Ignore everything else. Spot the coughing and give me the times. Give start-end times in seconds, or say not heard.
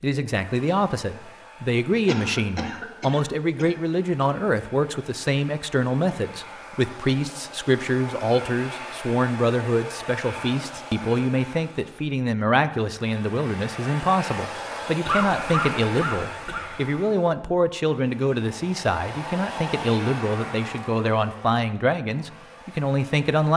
2.0-3.8, 15.0-16.8.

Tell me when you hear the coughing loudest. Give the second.
15 s.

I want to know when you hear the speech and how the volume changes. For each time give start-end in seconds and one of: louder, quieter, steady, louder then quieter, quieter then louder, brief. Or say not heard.
0.0-23.5 steady.